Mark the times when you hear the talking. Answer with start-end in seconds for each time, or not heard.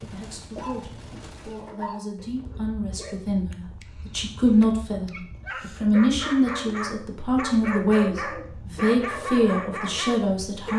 0.0-10.7.